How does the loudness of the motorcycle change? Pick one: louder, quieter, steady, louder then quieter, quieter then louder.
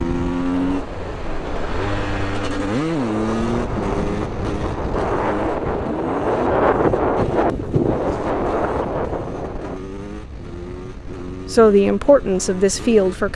quieter.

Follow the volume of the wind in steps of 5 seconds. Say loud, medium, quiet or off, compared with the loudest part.
medium, loud, off.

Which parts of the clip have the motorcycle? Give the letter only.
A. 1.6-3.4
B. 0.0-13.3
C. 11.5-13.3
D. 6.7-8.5
B.